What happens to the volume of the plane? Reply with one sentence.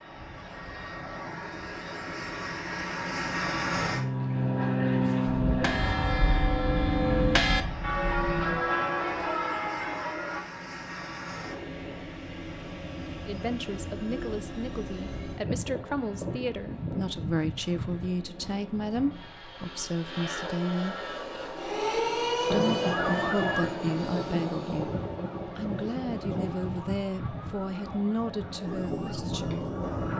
The volume of the plane goes down.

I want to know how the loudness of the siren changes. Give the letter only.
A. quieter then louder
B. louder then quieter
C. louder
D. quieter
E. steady
D.